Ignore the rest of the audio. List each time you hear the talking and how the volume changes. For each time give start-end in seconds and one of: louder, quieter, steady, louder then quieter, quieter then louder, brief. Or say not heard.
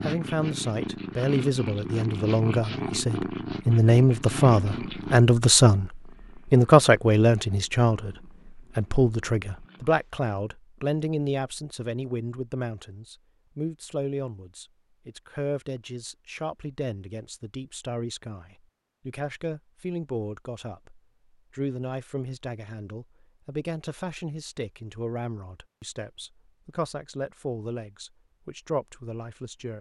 0.0-29.7 quieter.